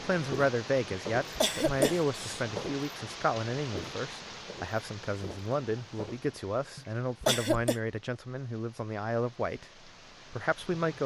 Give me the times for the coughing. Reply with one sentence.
You can hear the coughing from 0.9 to 2.4 s and from 6.8 to 7.8 s.